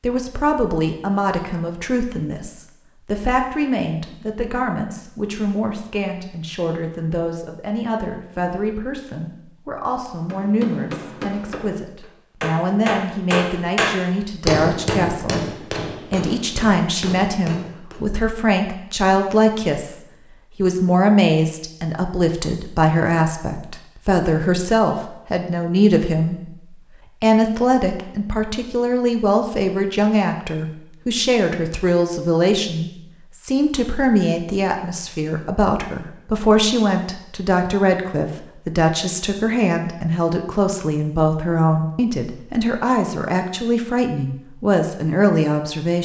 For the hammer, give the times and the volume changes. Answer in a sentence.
You can hear the hammer from 10.2 to 18.1 s, getting louder then quieter.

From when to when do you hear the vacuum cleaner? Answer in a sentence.
You can't hear the vacuum cleaner here.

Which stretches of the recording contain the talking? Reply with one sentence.
The talking can be heard from 0.0 to 46.0 s.